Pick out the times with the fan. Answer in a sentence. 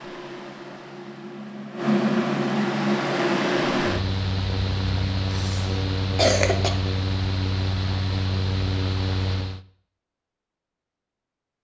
The fan can be heard from 0.0 to 9.6 s.